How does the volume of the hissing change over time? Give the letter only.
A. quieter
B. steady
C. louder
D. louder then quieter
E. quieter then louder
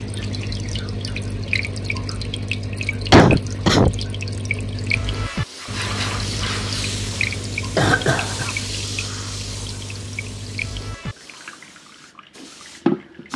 A.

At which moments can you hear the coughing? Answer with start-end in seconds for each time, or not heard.
3.1-4.0, 7.8-8.5.